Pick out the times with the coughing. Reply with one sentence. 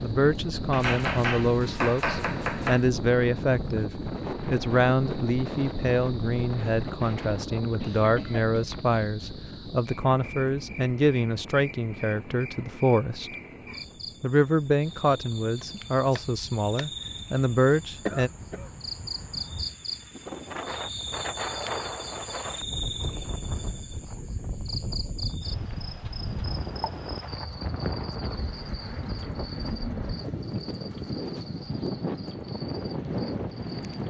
You can hear the coughing from 7.8 to 8.5 s and from 18.1 to 18.7 s.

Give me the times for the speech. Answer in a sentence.
You can hear the speech from 0.0 to 13.3 s and from 14.2 to 18.3 s.